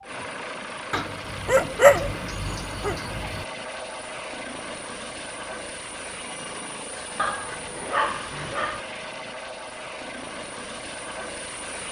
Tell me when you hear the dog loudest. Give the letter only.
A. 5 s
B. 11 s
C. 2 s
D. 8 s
C.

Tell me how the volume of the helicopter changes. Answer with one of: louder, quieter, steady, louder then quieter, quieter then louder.
steady.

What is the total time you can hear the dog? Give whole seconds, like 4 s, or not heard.
4 s.